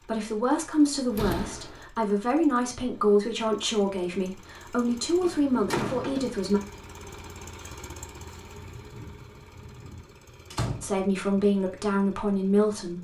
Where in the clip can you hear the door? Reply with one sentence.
The door can be heard from 0.9 to 1.9 s, from 5.2 to 6.3 s and from 10.5 to 11.4 s.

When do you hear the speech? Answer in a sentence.
You can hear the speech from 0.0 to 6.6 s and from 10.8 to 12.9 s.